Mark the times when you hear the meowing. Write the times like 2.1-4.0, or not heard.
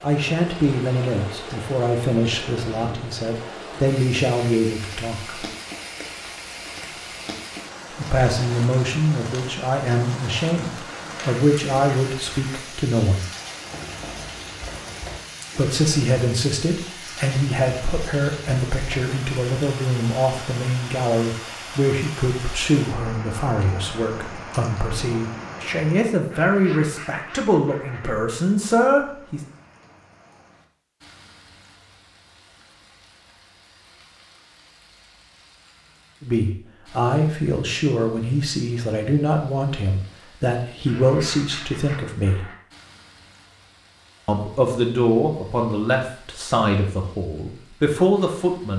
not heard.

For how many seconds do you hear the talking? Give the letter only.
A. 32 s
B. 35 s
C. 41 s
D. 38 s
B.